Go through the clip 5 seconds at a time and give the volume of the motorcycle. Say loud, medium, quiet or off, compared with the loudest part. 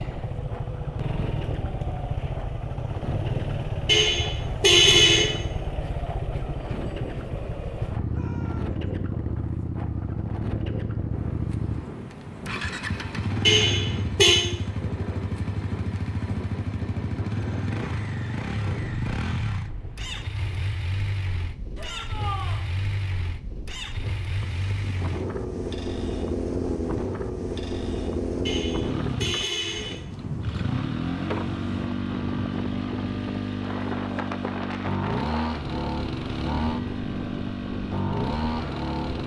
loud, loud, loud, loud, medium, loud, loud, loud.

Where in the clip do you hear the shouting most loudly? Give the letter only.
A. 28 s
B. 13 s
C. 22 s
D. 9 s
C.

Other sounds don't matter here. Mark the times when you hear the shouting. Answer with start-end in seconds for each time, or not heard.
8.1-8.8, 21.8-22.6.